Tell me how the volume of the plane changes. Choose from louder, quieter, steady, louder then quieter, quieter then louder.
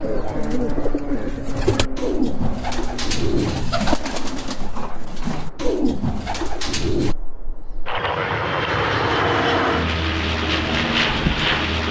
quieter then louder.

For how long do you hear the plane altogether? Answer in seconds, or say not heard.
12 s.